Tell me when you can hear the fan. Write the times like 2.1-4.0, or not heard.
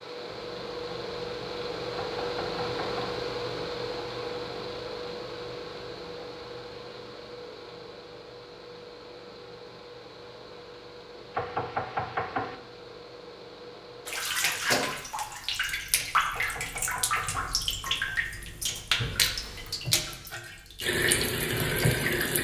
0.0-14.3.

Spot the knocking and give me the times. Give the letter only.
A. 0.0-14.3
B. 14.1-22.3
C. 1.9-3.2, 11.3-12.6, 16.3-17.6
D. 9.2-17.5
C.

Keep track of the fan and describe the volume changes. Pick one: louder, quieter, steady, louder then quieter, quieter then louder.
quieter.